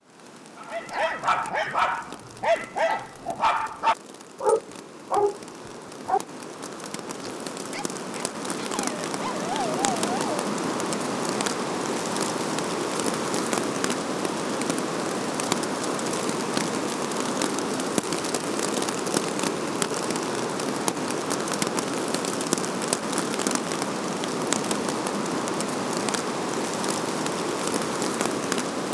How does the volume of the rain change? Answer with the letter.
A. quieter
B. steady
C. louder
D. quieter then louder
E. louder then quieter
C.